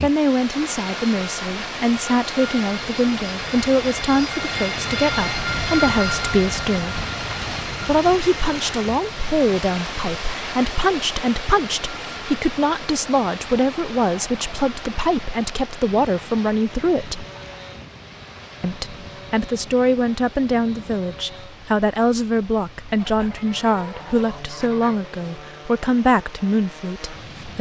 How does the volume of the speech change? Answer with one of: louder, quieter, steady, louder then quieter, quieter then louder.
steady.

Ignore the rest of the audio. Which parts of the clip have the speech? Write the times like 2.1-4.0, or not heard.
0.0-7.0, 7.8-17.2, 18.6-27.5.